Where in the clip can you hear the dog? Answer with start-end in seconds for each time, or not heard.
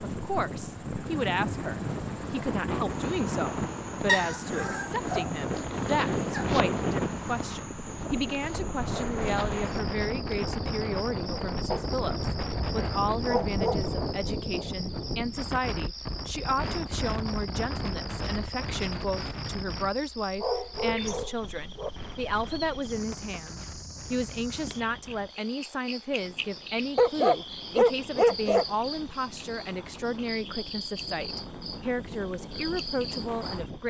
4.0-5.2, 6.2-6.7, 11.7-14.3, 20.4-21.9, 26.9-28.6.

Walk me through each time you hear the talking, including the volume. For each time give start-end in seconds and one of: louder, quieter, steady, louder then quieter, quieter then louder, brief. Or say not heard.
0.0-33.8 steady.